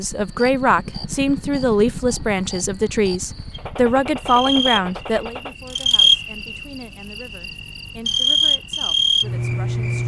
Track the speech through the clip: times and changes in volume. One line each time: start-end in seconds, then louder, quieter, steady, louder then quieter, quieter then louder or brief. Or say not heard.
0.0-10.0 quieter.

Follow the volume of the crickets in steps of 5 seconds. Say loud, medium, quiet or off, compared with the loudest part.
medium, loud.